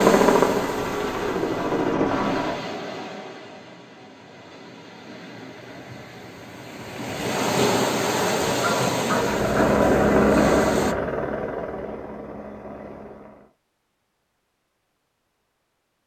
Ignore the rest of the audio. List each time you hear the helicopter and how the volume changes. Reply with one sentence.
The helicopter can be heard briefly from 0.0 to 2.6 s; and from 9.1 to 13.5 s, getting quieter.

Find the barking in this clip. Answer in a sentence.
The barking can be heard from 8.4 to 9.8 s.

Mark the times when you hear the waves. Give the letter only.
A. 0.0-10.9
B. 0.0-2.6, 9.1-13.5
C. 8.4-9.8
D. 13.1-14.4
A.